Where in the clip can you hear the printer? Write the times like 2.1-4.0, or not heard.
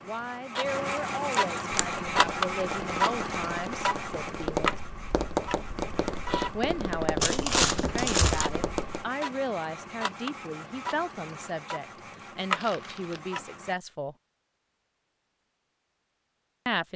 0.0-13.8.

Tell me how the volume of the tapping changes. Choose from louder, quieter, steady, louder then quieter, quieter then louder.
louder.